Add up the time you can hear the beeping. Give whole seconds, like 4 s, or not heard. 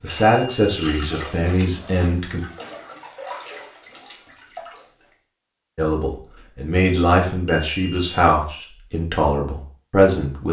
2 s.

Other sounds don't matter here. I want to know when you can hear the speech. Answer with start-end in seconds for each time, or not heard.
0.0-2.4, 5.8-10.4.